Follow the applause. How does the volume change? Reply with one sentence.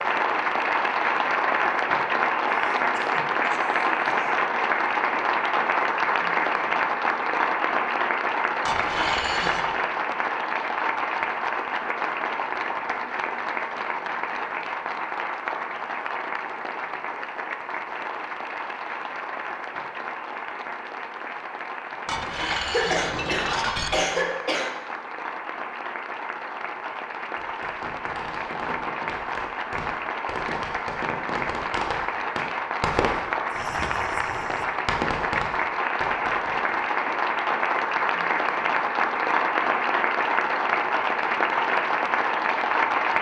The loudness of the applause goes down, then up.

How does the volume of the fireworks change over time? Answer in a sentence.
The loudness of the fireworks goes up.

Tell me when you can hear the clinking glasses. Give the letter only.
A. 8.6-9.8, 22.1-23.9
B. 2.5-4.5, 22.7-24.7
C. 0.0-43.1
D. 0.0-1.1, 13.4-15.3
A.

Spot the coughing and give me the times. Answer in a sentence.
The coughing can be heard from 2.5 to 4.5 s and from 22.7 to 24.7 s.